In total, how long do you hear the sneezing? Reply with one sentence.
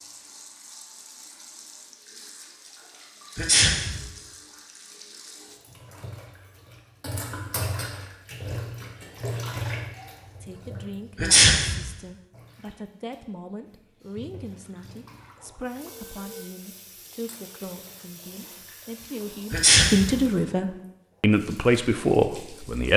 You can hear the sneezing for 2 seconds altogether.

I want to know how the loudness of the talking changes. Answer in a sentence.
The volume of the talking goes up.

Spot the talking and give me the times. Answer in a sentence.
The talking can be heard from 10.4 to 22.9 s.